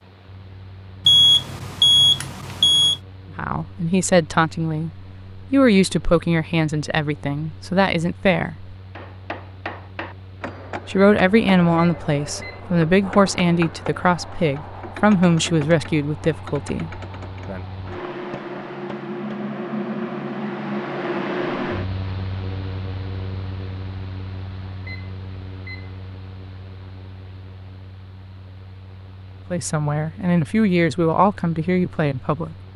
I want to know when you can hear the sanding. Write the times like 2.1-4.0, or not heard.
not heard.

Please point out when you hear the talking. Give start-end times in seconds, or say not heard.
3.4-8.8, 10.8-17.6, 29.5-32.5.